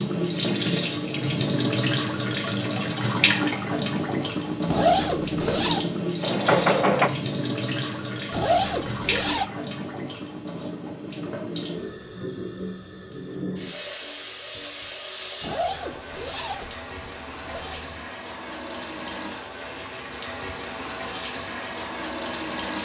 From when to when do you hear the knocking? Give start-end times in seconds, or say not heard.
6.2-7.1.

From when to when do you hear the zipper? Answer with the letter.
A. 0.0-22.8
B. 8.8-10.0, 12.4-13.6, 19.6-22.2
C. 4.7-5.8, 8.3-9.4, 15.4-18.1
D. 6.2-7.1
C.